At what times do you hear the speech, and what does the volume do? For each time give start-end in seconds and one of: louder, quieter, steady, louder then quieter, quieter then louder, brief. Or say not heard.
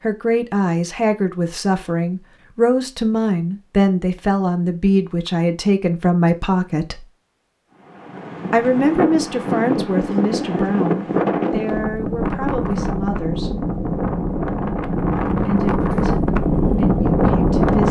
0.0-7.1 steady
8.5-13.5 quieter
15.3-17.8 brief.